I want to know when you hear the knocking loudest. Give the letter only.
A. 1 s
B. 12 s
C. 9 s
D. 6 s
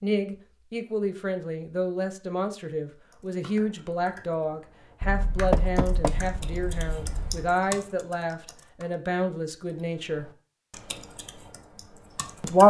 D.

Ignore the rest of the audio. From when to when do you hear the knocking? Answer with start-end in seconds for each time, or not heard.
5.0-7.5.